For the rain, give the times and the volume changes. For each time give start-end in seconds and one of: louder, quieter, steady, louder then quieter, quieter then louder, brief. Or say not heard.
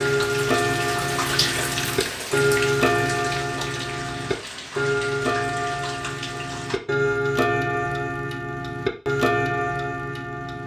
0.0-6.8 quieter.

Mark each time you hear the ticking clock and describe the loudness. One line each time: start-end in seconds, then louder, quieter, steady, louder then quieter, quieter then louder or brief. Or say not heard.
0.0-10.6 steady.